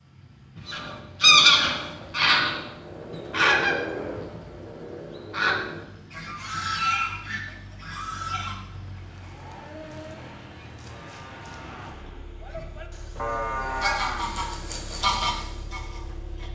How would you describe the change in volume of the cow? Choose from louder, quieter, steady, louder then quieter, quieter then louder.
quieter then louder.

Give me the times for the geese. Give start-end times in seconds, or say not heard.
0.7-8.6, 12.5-16.5.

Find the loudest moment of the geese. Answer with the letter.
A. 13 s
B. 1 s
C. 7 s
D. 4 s
B.